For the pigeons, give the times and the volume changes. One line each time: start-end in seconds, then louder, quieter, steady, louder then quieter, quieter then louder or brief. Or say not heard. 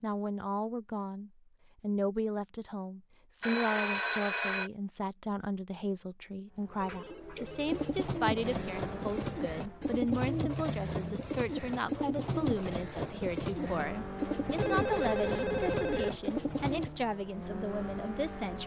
6.7-16.9 steady.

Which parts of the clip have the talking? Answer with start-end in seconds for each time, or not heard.
0.0-18.6.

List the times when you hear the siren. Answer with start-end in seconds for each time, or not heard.
not heard.